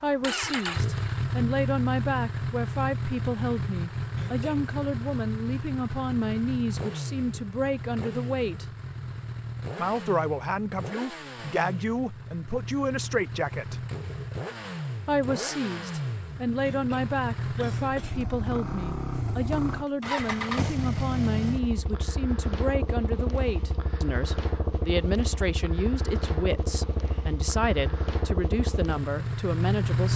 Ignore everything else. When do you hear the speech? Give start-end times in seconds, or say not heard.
0.0-8.7, 9.8-13.8, 15.1-30.1.